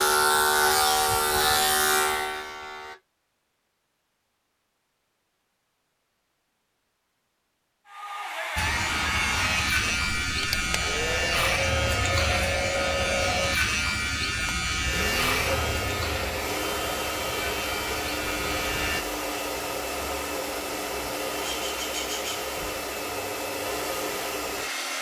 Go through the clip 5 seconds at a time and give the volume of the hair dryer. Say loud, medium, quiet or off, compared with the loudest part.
off, loud, loud, loud, loud.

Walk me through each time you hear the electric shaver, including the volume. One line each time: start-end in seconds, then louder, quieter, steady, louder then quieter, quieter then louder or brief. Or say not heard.
0.0-3.0 brief
8.6-19.1 quieter.